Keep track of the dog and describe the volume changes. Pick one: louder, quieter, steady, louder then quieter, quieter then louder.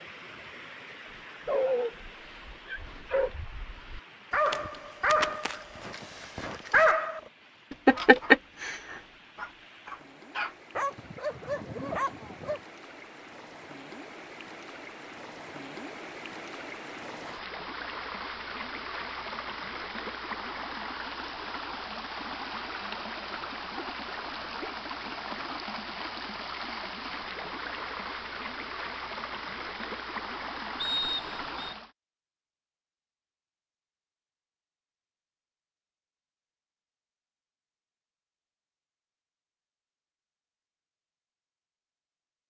louder then quieter.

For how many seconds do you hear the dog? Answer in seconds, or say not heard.
11 s.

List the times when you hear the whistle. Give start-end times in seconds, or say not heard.
30.8-31.8.